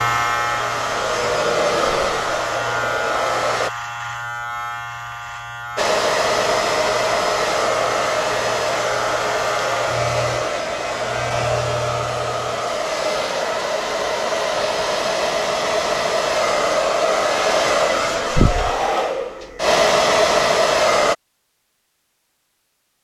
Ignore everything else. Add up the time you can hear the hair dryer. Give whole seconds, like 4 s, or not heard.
19 s.